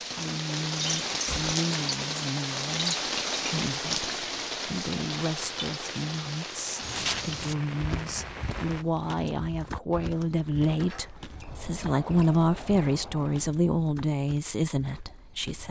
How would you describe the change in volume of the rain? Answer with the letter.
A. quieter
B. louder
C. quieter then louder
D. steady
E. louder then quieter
A.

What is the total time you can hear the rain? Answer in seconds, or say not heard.
9 s.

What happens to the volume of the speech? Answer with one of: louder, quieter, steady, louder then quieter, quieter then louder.
louder.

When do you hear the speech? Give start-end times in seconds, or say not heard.
0.1-15.6.